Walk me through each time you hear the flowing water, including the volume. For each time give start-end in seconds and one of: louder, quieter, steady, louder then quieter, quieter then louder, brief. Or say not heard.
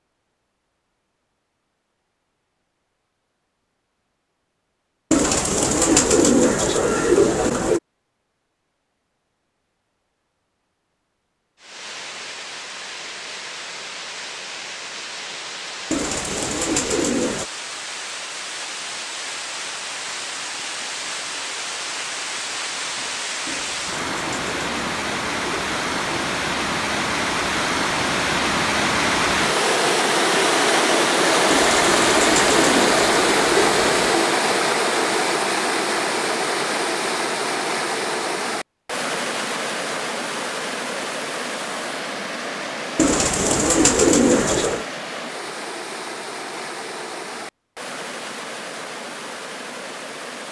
11.6-50.4 louder then quieter.